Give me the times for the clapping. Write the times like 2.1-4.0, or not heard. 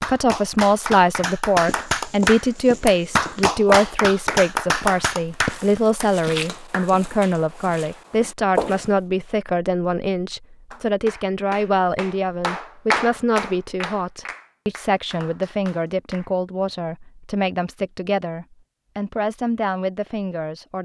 0.0-7.1, 10.7-16.3.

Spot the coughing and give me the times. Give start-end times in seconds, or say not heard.
not heard.